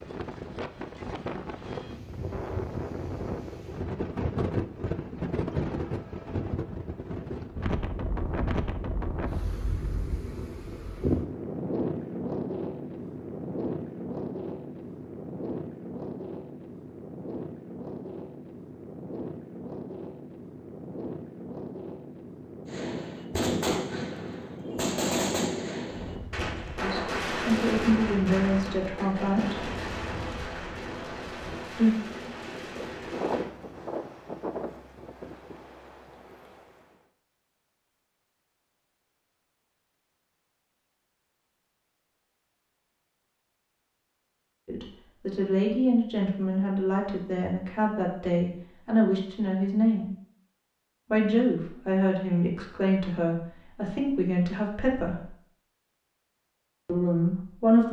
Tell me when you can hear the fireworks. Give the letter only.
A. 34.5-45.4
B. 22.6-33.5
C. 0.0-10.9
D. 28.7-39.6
B.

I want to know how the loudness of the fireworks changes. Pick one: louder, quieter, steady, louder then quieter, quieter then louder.
quieter.